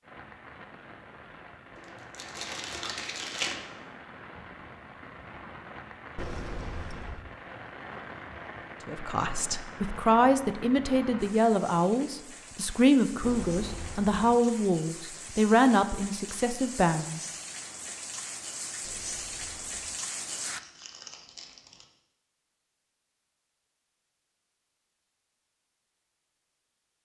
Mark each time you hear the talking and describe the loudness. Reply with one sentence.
You can hear the talking from 8.8 to 17.2 s, at a steady volume.